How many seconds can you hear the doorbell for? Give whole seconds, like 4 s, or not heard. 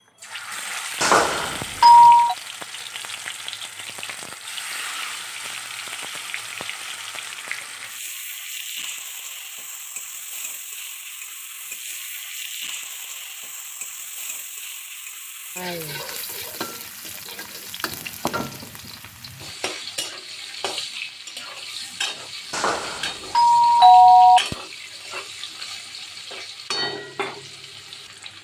3 s.